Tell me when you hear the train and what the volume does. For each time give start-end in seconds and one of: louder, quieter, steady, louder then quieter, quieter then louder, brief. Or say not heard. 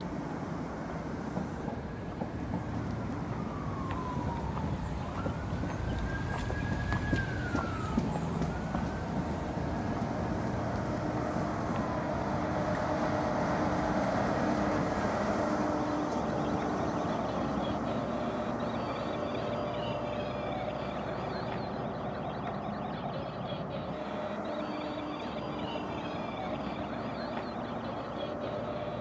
0.0-28.9 louder then quieter.